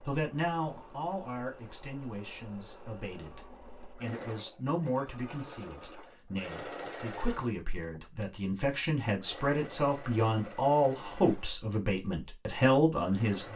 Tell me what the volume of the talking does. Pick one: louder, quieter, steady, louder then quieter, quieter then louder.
louder.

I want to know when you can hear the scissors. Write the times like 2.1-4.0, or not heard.
not heard.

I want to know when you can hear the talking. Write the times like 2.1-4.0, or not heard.
0.0-13.5.